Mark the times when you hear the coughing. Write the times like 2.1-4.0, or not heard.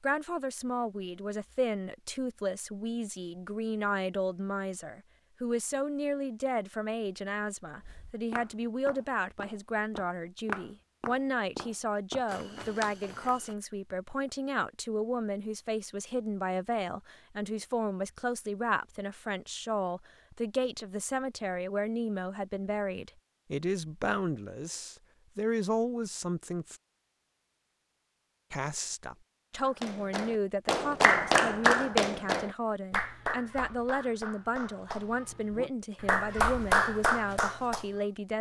not heard.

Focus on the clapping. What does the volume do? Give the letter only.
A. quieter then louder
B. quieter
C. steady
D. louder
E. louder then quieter
A.